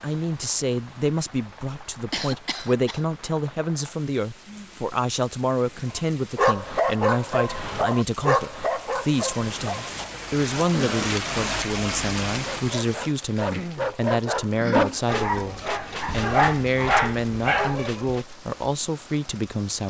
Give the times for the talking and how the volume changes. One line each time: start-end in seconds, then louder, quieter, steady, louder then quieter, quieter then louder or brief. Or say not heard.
0.0-19.8 steady.